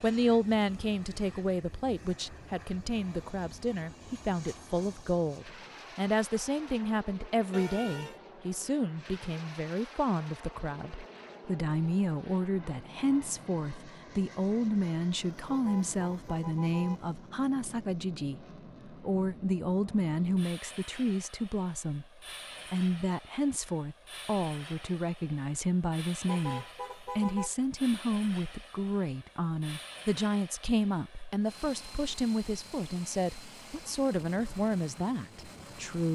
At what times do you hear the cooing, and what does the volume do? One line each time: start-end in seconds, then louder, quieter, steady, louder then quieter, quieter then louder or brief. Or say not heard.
not heard.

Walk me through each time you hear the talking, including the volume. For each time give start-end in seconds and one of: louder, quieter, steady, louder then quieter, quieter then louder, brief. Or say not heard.
0.0-36.1 steady.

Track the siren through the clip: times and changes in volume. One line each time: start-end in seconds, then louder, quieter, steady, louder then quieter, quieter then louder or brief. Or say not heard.
not heard.